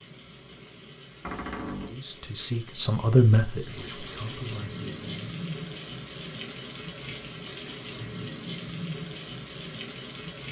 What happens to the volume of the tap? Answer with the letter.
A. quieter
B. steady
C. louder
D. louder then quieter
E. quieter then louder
C.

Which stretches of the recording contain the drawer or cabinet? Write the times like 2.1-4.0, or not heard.
1.2-2.0.